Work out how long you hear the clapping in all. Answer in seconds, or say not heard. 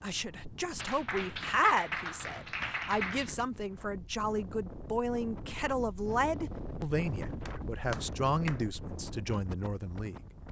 4 s.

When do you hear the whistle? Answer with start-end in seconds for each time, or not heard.
not heard.